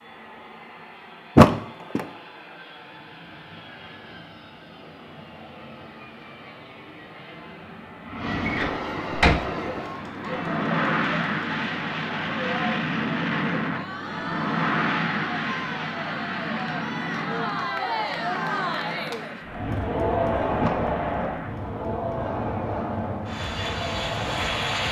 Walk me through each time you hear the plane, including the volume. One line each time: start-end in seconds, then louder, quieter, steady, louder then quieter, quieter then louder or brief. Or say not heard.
0.0-24.8 louder then quieter.